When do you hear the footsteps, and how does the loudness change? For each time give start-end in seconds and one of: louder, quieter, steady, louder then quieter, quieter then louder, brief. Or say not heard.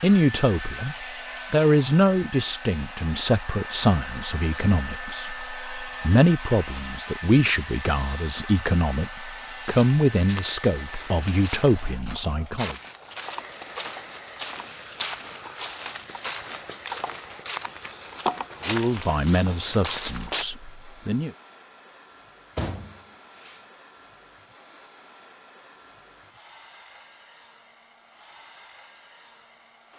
9.6-20.4 louder.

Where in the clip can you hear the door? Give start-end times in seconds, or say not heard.
22.6-23.6.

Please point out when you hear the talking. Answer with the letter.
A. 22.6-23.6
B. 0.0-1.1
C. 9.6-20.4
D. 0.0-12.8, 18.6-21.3
D.